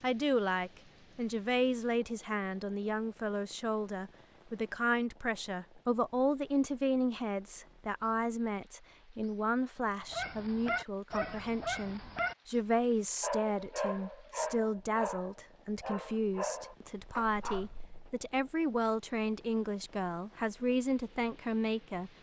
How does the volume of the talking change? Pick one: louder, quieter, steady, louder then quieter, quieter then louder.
steady.